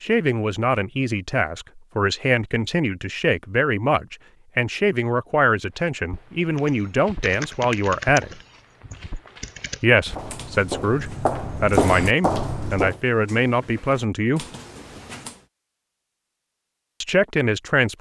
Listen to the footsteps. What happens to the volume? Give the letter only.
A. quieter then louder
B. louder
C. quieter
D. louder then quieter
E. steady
A.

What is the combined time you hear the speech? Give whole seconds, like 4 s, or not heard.
14 s.